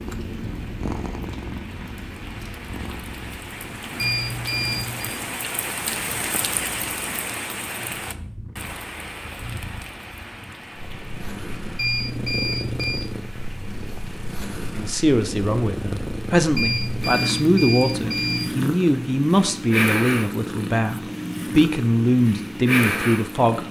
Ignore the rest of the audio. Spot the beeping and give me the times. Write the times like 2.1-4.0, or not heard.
4.0-5.1, 11.8-13.0, 16.6-18.5.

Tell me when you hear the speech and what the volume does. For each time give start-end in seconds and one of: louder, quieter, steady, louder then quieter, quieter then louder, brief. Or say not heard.
14.8-23.6 steady.